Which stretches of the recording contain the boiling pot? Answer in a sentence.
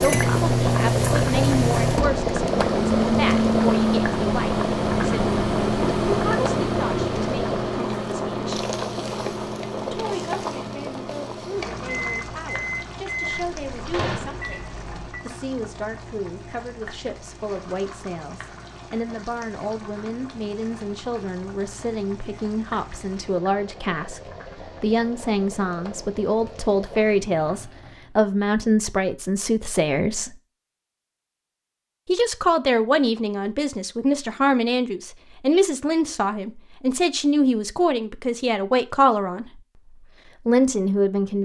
You can hear the boiling pot from 0.0 to 28.1 s.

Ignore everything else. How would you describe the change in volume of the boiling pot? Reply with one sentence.
The loudness of the boiling pot goes down.